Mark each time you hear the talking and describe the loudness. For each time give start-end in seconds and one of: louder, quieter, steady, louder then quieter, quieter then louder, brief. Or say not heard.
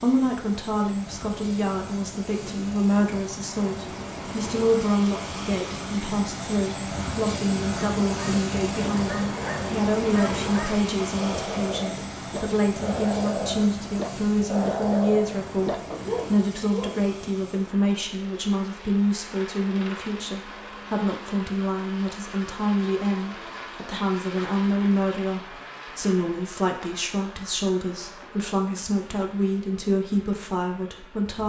0.0-31.4 steady.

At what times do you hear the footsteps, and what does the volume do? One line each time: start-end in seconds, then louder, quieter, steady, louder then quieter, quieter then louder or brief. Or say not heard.
not heard.